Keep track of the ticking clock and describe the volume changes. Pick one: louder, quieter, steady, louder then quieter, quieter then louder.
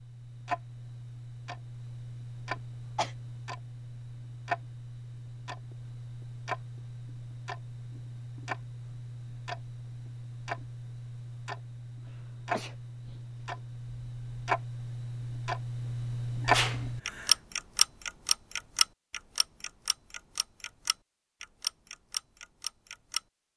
louder.